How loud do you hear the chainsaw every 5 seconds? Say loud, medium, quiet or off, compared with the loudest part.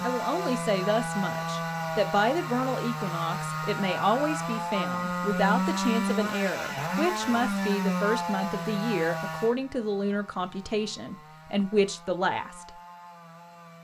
loud, loud, quiet.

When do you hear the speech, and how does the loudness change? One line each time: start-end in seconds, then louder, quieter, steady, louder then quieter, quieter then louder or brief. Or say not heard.
0.0-12.8 steady.